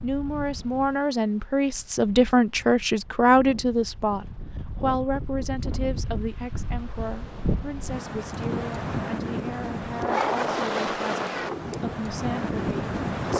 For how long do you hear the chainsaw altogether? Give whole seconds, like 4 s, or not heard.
not heard.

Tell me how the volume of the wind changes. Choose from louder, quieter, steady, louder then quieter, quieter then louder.
louder.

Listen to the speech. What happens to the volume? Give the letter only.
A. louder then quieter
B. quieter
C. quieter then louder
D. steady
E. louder
B.